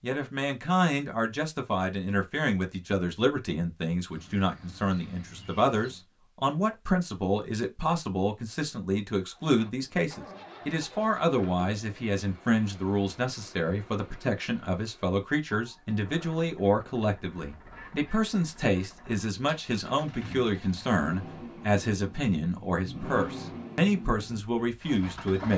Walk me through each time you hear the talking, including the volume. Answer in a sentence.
You can hear the talking from 0.0 to 25.5 s, at a steady volume.